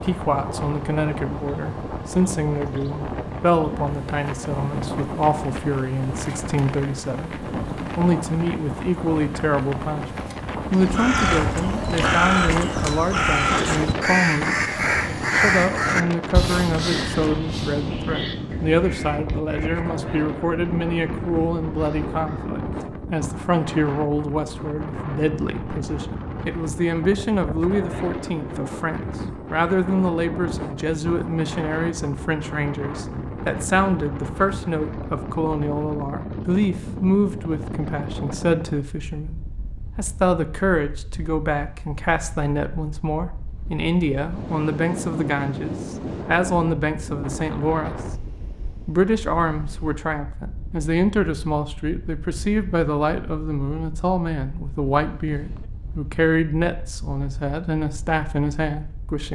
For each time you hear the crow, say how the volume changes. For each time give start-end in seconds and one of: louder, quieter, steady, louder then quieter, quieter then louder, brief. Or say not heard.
10.7-22.5 quieter.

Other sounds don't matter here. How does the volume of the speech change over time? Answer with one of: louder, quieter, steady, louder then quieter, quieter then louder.
steady.